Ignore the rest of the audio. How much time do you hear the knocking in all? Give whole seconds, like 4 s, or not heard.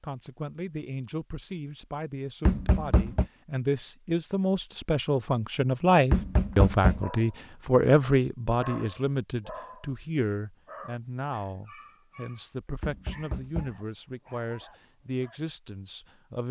3 s.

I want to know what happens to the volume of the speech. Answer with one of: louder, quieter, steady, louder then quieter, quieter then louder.
louder then quieter.